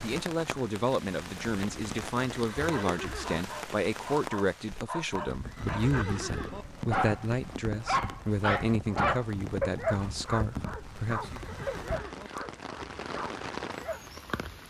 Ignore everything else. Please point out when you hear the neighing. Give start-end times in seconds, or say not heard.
2.5-3.4, 5.5-6.7, 11.2-12.3.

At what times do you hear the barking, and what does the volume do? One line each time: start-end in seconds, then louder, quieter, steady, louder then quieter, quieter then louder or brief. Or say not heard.
2.5-14.2 louder then quieter.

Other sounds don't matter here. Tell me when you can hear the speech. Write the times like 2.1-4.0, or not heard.
0.0-11.4.